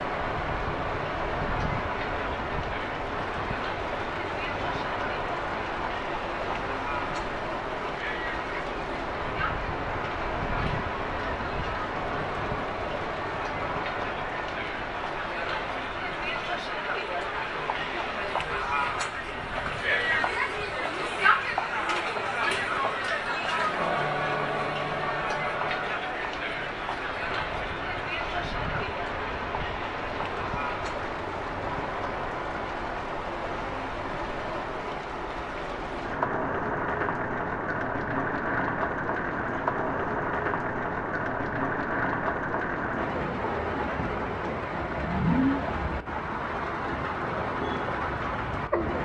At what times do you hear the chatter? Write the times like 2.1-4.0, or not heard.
0.0-31.1.